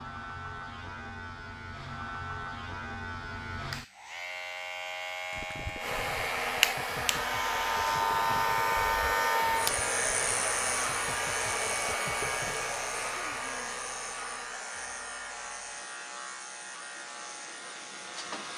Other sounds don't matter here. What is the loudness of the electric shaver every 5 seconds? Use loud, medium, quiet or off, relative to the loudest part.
medium, loud, medium, quiet.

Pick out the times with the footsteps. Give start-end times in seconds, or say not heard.
not heard.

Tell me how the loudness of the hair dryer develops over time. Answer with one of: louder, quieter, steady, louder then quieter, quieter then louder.
quieter.